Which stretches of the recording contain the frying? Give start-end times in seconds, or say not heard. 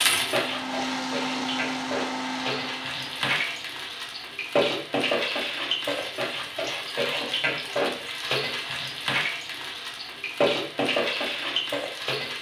0.0-12.3.